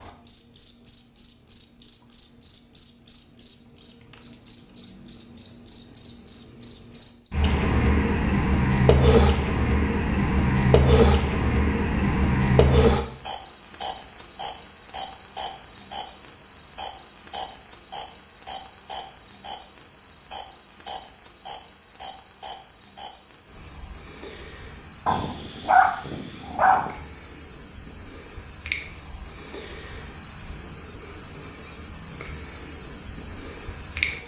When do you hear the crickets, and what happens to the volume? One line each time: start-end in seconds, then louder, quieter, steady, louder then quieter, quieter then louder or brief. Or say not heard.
0.0-34.2 quieter.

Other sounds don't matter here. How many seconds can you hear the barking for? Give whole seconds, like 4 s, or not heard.
2 s.